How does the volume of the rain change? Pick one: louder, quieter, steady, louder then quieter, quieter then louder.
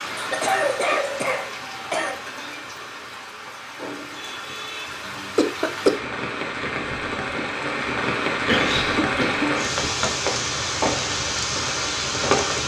louder.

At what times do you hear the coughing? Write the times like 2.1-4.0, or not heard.
0.1-2.1, 5.0-6.1, 8.4-10.1.